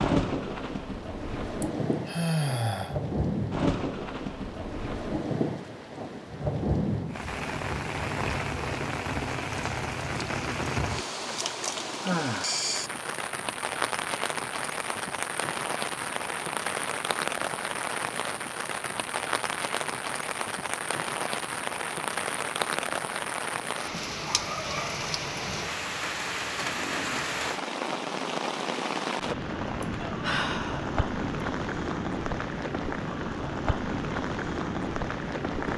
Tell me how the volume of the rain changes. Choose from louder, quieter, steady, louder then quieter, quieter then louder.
steady.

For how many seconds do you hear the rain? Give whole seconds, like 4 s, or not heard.
36 s.